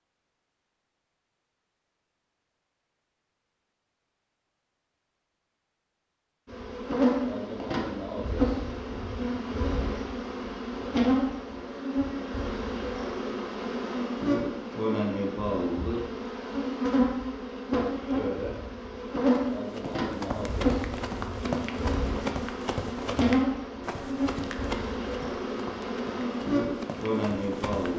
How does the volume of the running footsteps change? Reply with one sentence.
The loudness of the running footsteps goes down.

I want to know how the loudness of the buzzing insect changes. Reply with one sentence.
The loudness of the buzzing insect stays about the same.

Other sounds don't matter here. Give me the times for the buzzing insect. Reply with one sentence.
The buzzing insect can be heard from 6.5 to 27.9 s.